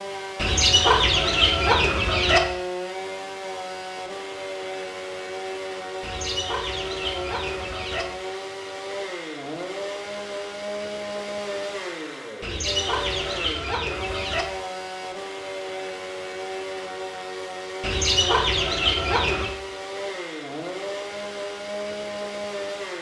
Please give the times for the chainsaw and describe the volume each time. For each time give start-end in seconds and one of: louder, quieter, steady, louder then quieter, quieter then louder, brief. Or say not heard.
0.0-22.9 steady.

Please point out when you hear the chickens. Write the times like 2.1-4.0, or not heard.
0.3-2.4, 6.0-8.1, 12.4-14.4, 17.8-19.6.